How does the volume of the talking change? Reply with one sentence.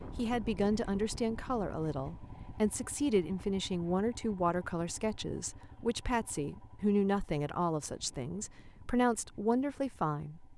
The volume of the talking stays about the same.